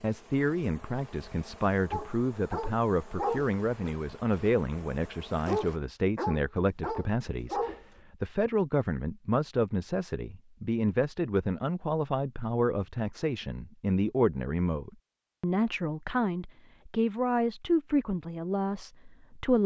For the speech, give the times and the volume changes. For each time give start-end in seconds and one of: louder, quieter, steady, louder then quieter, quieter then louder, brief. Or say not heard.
0.0-19.6 steady.